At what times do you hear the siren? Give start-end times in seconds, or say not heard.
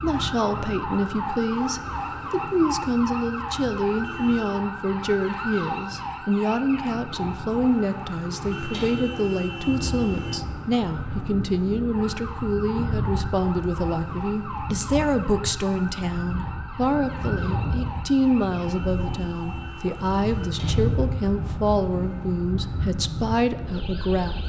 0.0-24.4.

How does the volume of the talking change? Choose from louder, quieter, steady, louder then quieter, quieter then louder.
steady.